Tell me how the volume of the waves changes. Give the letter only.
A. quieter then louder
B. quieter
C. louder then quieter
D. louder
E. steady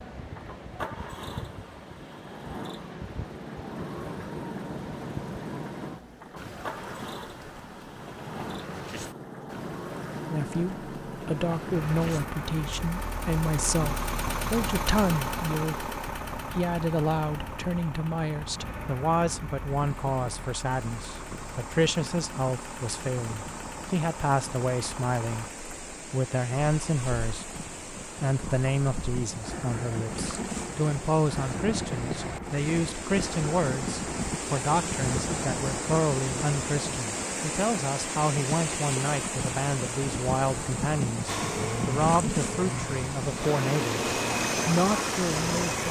D.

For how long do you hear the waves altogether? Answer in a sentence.
You can hear the waves for 46 seconds altogether.